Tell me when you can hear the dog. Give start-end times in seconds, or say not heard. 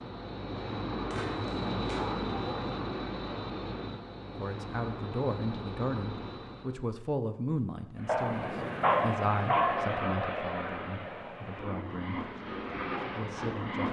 1.1-2.8, 8.1-9.9.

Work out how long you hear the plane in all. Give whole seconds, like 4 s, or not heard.
13 s.